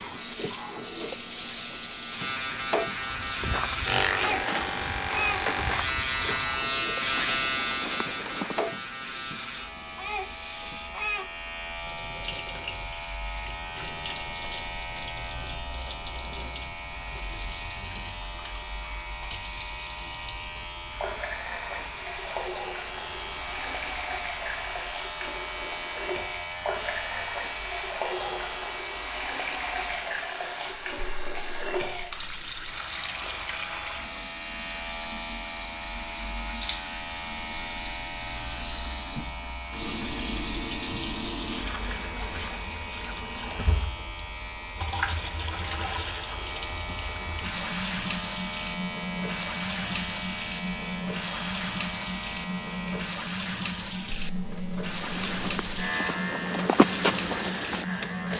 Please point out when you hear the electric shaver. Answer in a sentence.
You can hear the electric shaver from 0.0 to 58.3 s.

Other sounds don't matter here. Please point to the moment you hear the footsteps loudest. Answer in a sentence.
The loudest moment of the footsteps is at 57 seconds.